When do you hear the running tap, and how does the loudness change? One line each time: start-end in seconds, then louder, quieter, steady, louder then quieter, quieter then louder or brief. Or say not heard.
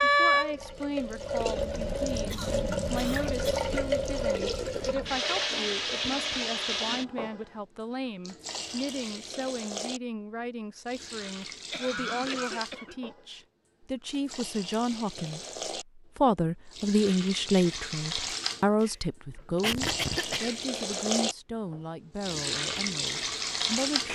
0.0-24.1 quieter then louder.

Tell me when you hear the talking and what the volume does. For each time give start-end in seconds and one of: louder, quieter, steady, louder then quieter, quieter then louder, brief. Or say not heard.
0.0-24.1 louder then quieter.